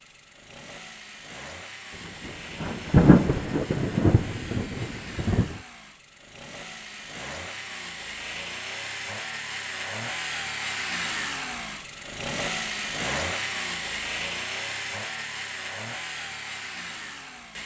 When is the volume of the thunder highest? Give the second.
3 s.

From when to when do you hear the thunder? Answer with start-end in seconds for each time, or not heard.
2.2-5.6.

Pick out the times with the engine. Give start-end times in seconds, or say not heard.
0.0-17.6.